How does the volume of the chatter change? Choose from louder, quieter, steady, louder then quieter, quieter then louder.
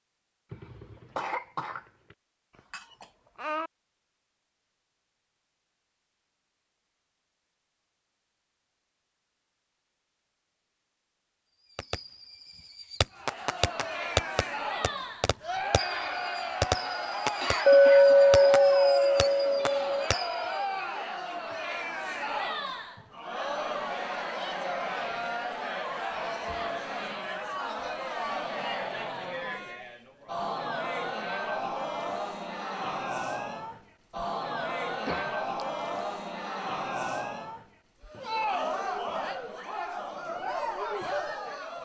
steady.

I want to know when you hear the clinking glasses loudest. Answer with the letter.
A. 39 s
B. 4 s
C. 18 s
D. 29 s
C.